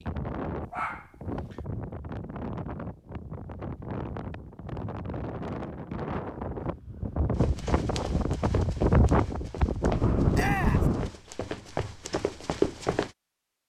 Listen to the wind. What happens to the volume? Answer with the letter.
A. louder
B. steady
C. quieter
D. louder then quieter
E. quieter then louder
A.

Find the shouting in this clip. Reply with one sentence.
The shouting can be heard from 10.3 to 10.9 s.